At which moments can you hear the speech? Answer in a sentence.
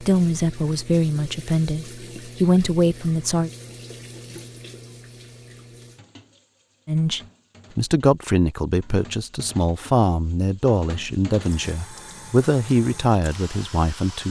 The speech can be heard from 0.0 to 3.5 s and from 6.8 to 14.2 s.